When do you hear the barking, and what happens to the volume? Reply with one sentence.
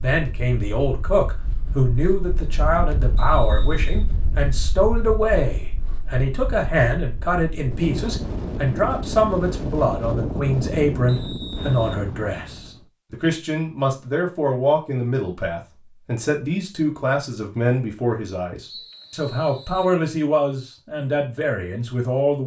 You can't hear the barking here.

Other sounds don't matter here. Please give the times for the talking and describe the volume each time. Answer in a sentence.
The talking can be heard from 0.0 to 22.4 s, at a steady volume.